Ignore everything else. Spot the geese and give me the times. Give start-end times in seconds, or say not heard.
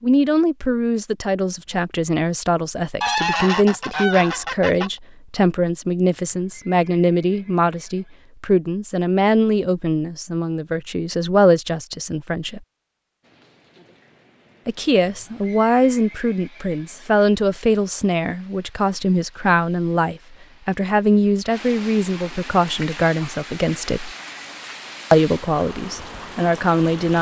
3.0-4.9.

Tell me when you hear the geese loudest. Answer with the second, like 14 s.
3 s.